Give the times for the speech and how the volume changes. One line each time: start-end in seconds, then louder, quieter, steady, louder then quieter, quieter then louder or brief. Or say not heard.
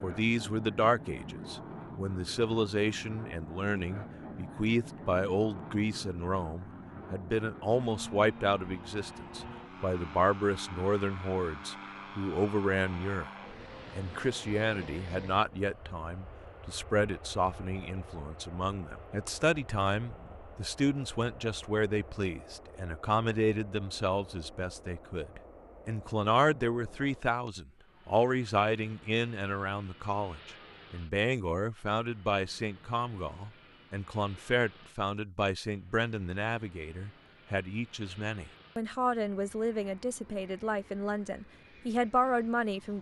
0.0-42.9 steady.